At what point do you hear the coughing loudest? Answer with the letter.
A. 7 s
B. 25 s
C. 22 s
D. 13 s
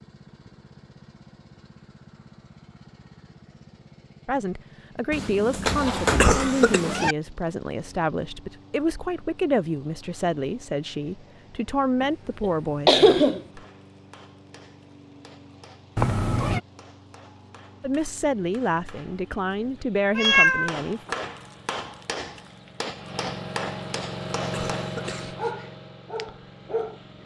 D.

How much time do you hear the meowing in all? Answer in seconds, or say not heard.
3 s.